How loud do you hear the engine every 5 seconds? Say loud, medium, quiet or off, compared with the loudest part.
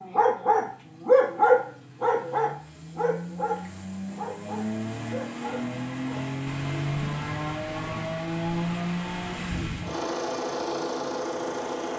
medium, loud, loud.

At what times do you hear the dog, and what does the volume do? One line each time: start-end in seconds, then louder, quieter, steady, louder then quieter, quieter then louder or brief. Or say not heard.
0.0-6.2 quieter.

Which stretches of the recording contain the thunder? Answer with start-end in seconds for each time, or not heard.
6.5-9.8.